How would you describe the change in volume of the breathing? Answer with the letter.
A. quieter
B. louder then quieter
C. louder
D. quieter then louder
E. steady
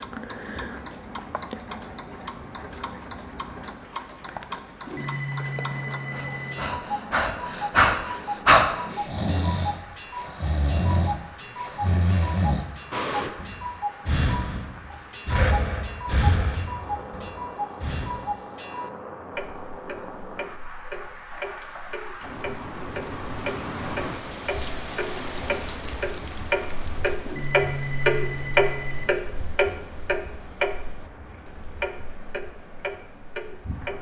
A.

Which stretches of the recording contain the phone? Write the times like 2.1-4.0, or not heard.
4.8-6.7, 27.2-29.1.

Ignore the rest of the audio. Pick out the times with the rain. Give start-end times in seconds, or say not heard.
0.0-33.9.